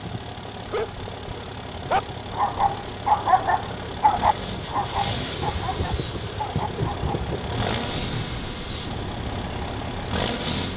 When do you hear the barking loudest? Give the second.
3 s.